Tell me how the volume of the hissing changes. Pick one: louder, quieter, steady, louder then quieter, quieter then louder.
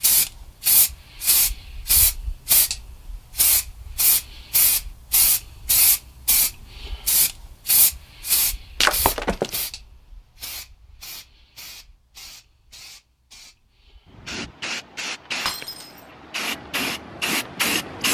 quieter then louder.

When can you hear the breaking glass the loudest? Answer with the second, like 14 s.
9 s.